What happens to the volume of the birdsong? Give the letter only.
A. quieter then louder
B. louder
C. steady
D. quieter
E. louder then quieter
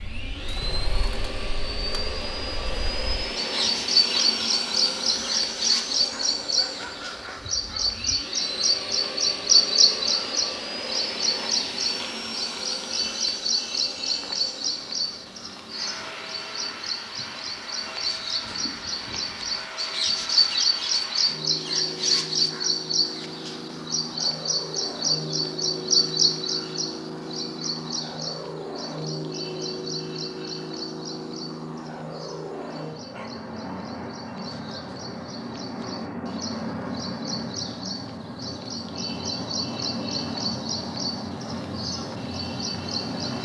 D.